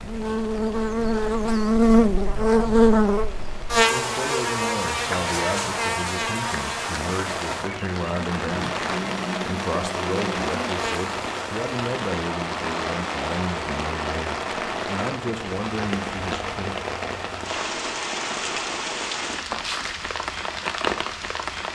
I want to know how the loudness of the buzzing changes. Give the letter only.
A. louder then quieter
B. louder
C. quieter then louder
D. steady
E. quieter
E.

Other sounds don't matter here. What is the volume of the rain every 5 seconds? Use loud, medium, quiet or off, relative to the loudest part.
quiet, loud, loud, loud, loud.